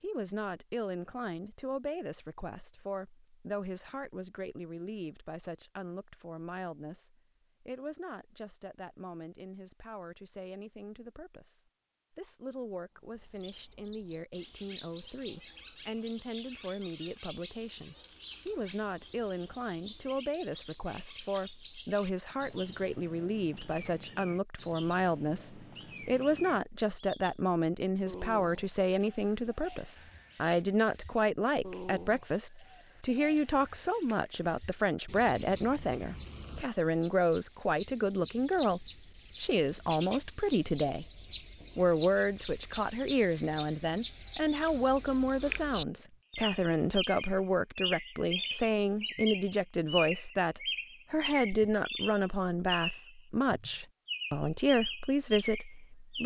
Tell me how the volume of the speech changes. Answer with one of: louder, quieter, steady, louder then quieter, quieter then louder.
louder.